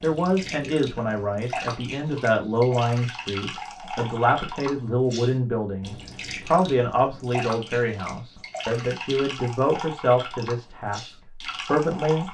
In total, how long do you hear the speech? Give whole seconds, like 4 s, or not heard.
12 s.